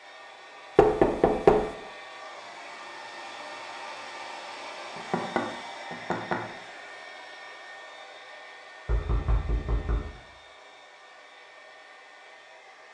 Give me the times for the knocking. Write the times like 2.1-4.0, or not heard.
0.8-1.7, 5.0-6.5, 8.8-10.2.